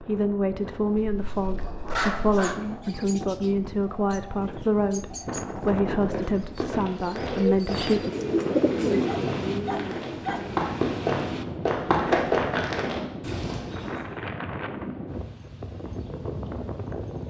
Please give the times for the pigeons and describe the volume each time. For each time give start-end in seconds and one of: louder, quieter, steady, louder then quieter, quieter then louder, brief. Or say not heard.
2.1-10.7 louder.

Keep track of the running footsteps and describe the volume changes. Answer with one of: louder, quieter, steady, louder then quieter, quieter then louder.
louder.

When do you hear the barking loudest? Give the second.
2 s.